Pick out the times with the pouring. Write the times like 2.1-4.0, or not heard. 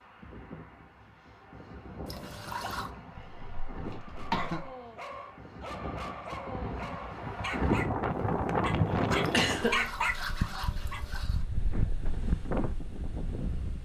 2.0-2.9, 9.4-11.4.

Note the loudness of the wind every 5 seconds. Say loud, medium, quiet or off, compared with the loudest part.
quiet, loud, medium.